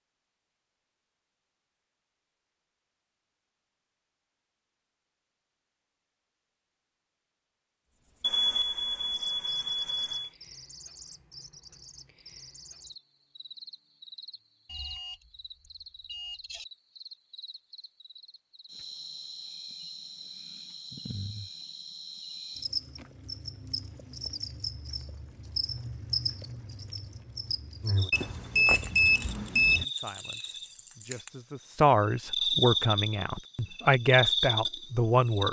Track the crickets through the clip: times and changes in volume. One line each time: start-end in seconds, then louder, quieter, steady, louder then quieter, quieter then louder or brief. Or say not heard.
7.9-35.4 louder.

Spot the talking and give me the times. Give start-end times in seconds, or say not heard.
29.6-35.4.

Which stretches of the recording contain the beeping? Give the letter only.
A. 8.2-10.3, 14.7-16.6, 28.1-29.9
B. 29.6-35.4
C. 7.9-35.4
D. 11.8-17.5
A.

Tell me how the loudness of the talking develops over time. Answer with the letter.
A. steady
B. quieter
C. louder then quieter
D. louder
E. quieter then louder
D.